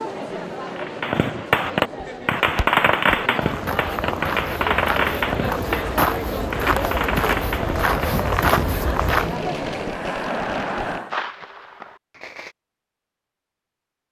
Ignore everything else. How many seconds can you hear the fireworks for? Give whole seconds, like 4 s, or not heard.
12 s.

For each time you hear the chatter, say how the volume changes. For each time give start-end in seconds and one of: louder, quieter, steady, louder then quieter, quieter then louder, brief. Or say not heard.
0.0-11.2 louder.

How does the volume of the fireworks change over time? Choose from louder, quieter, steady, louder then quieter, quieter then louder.
quieter.